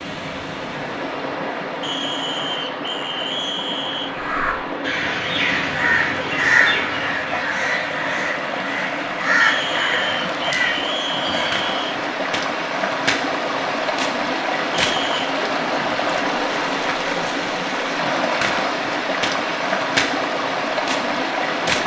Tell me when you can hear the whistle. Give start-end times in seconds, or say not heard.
1.8-4.2, 9.4-12.0, 14.8-15.3.